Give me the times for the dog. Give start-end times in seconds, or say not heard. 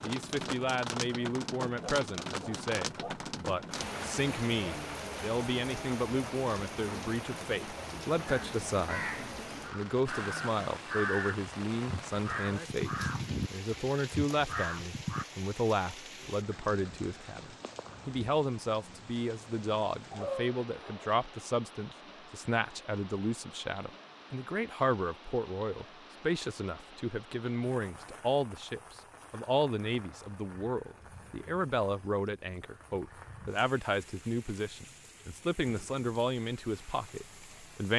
1.8-3.2, 20.1-21.1.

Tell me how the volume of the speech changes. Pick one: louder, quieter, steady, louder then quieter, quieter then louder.
steady.